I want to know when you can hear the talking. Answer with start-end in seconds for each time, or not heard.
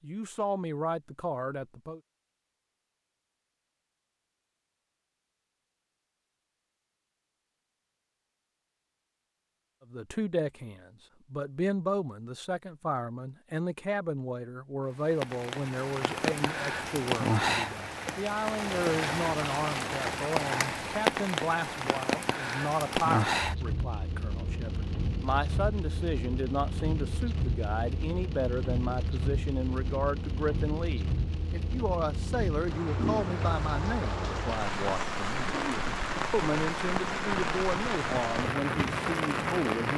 0.0-2.0, 9.9-39.9.